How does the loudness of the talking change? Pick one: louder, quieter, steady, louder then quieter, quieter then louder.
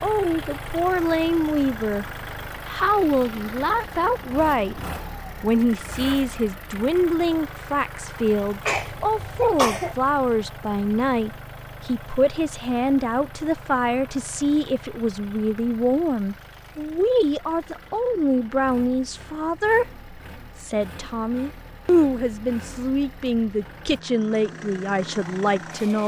steady.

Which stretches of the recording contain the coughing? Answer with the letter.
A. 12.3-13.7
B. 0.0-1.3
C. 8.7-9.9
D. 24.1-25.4
C.